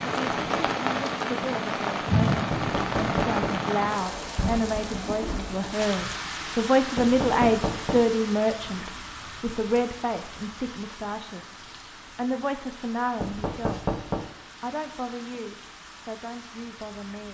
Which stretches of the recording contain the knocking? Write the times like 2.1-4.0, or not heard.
2.5-3.6, 7.0-8.1, 13.2-14.3.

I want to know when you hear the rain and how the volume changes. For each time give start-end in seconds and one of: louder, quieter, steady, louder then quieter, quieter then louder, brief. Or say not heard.
0.0-17.2 quieter.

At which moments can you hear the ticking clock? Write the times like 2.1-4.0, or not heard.
not heard.